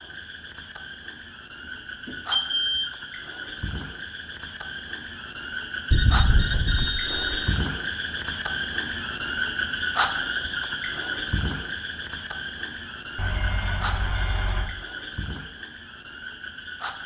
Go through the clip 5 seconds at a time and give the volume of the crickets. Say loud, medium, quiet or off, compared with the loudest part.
medium, loud, loud, medium.